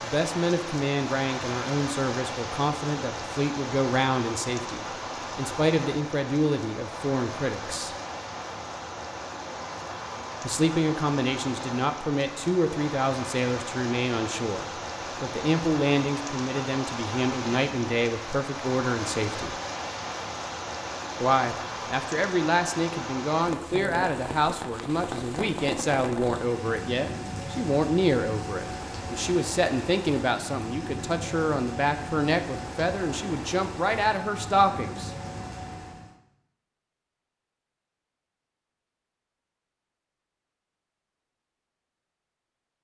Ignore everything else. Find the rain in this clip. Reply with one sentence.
You can hear the rain from 0.0 to 36.1 s.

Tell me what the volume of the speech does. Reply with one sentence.
The loudness of the speech stays about the same.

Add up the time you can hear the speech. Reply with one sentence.
The speech can be heard for 31 seconds in total.